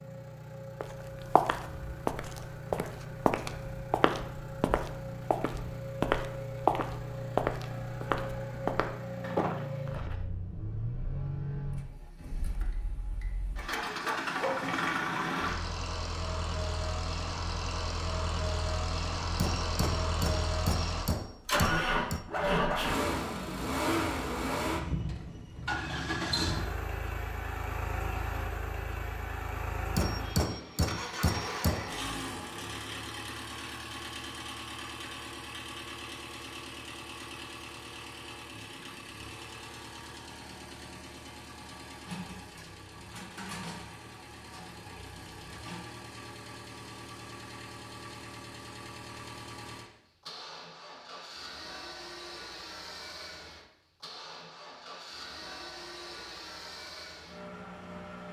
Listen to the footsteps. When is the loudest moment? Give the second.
7 s.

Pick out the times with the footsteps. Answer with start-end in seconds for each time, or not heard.
0.8-10.2.